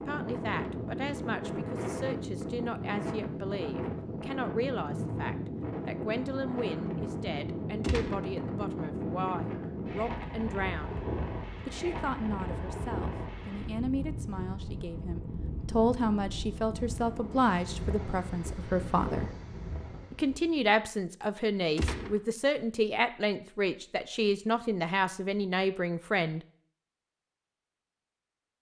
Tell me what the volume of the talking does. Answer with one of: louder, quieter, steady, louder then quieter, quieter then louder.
louder.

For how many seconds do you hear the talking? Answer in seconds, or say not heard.
25 s.